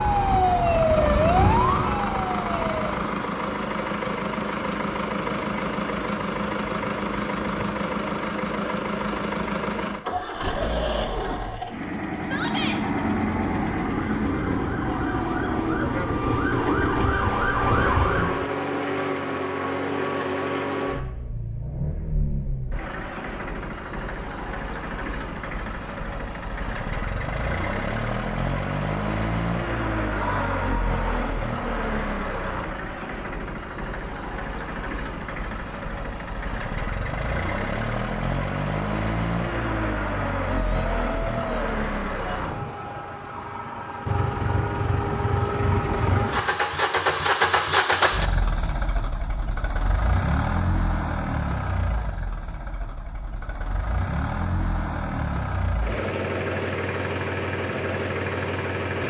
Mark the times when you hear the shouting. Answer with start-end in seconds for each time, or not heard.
12.2-12.8, 30.1-31.2, 40.5-42.4.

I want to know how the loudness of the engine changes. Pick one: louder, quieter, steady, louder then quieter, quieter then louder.
steady.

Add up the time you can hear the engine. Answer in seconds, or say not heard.
59 s.